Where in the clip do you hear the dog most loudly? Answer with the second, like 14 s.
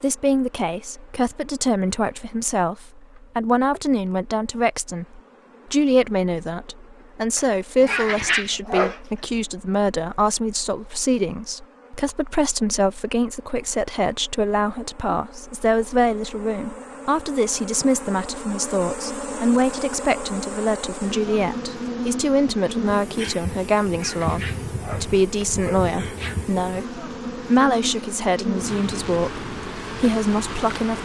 8 s.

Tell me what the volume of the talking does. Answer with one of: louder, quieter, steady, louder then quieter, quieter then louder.
steady.